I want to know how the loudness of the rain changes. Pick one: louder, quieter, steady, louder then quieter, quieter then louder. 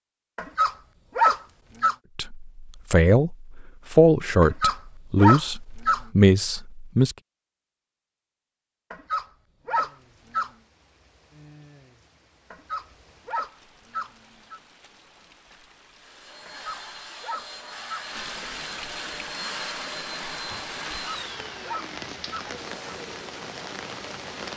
louder.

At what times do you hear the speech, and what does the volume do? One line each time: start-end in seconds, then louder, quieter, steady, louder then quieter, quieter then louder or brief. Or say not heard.
2.1-7.2 steady.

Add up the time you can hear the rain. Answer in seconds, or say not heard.
15 s.